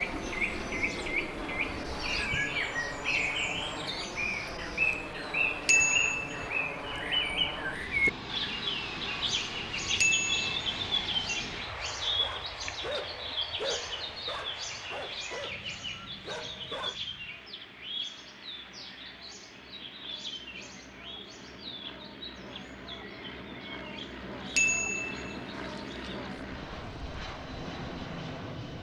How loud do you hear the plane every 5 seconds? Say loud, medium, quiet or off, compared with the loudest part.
loud, loud, loud, quiet, medium, loud.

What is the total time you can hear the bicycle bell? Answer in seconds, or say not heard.
3 s.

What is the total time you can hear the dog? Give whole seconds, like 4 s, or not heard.
5 s.